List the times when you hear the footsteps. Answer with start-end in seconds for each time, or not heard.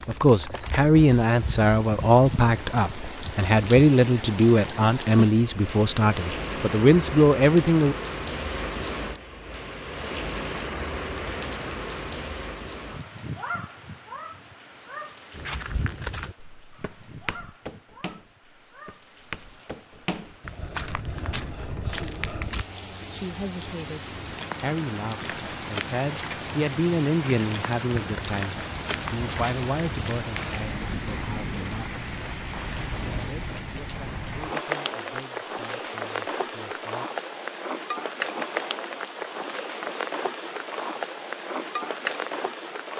15.3-22.6, 27.9-30.6.